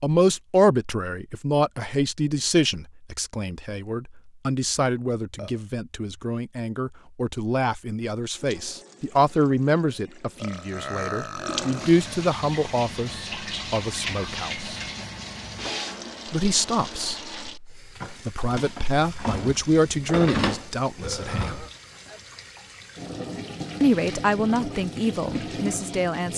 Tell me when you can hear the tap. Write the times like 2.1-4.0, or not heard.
8.3-26.3.